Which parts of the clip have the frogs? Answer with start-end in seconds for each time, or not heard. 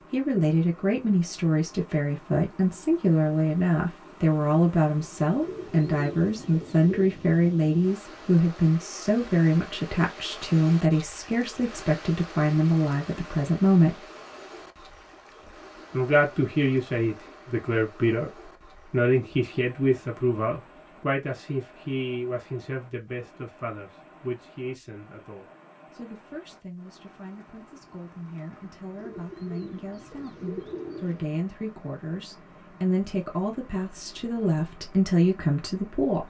not heard.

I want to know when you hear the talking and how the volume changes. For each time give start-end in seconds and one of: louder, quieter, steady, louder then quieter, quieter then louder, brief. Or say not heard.
0.1-14.1 steady
15.9-36.2 quieter then louder.